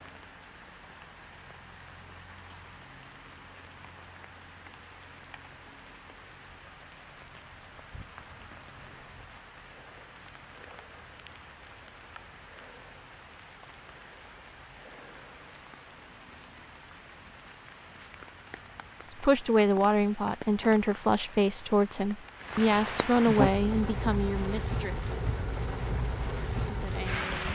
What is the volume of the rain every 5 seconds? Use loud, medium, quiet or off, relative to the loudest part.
quiet, quiet, quiet, quiet, loud, loud.